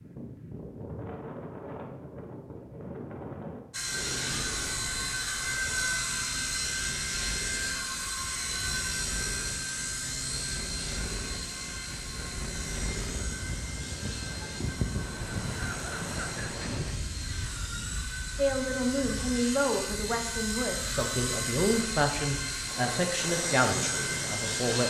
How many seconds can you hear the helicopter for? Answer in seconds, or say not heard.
21 s.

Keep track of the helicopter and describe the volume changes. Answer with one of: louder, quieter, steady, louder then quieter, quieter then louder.
quieter then louder.